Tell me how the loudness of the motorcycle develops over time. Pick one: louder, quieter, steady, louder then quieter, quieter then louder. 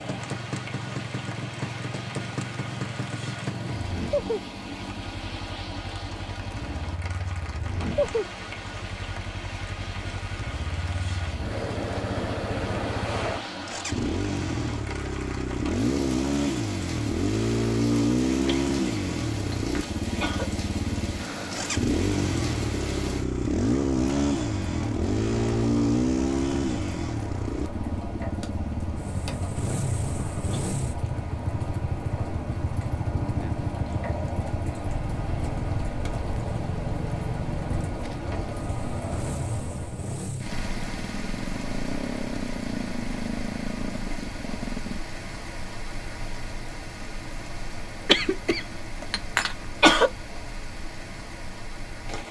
louder then quieter.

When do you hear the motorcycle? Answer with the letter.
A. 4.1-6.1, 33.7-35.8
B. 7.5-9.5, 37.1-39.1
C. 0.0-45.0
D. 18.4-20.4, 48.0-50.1
C.